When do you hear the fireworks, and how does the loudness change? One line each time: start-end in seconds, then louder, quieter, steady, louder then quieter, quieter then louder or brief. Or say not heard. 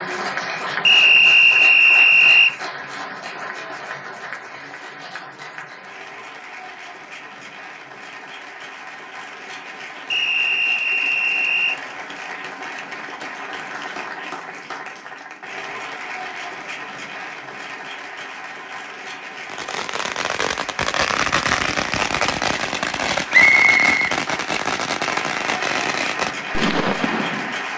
19.4-27.6 steady.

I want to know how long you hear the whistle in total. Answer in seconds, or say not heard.
4 s.